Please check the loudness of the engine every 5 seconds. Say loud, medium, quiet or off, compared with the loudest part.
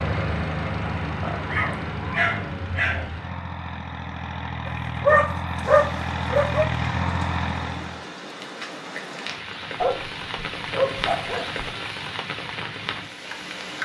loud, loud, off.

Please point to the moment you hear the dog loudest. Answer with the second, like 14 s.
5 s.